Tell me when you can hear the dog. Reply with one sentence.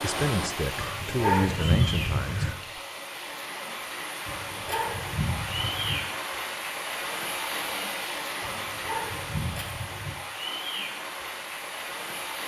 You can hear the dog from 0.8 to 2.5 s, from 4.2 to 6.0 s and from 8.4 to 10.2 s.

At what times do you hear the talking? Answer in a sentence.
The talking can be heard from 0.0 to 2.8 s.